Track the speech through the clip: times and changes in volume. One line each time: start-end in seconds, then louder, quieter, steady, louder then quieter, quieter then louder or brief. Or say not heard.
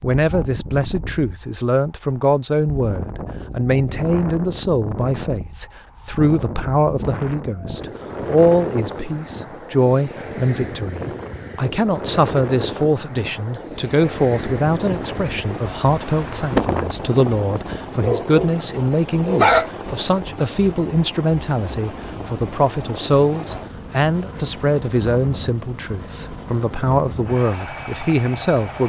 0.0-28.8 steady.